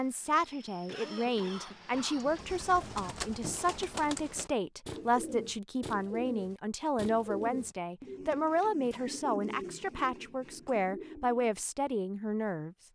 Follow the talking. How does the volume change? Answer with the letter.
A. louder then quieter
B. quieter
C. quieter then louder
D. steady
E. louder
D.